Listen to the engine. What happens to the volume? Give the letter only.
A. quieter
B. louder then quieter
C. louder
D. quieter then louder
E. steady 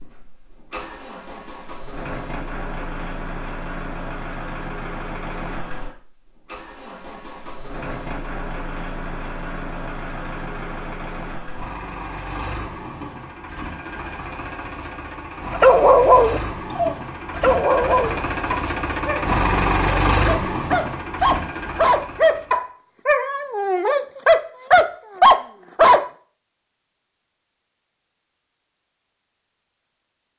C.